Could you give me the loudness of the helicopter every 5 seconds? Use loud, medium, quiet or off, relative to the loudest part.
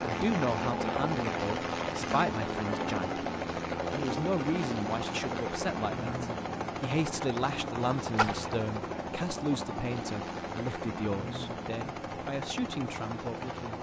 loud, loud, medium.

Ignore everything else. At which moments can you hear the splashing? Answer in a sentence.
The splashing can be heard from 8.2 to 8.6 s.